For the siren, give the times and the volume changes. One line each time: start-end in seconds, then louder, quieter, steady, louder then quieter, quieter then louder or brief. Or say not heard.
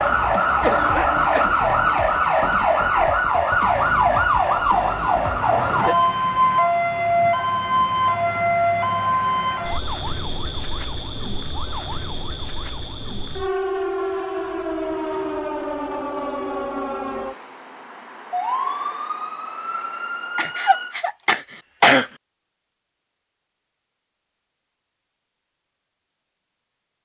0.0-20.9 quieter.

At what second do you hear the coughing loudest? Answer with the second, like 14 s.
22 s.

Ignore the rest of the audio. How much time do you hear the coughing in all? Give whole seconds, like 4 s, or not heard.
3 s.